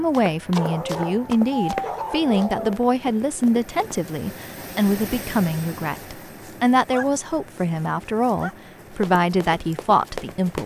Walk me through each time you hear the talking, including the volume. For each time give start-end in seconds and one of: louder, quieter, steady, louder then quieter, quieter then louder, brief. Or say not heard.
0.0-10.6 steady.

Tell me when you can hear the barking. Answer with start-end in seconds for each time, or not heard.
0.6-2.9, 6.0-8.6.